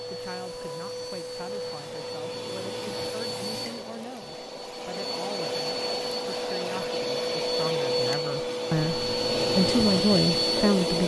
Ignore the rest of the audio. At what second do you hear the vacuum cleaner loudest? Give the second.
10 s.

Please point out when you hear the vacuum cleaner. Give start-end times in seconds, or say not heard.
0.0-11.0.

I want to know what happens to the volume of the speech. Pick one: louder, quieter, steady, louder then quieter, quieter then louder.
louder.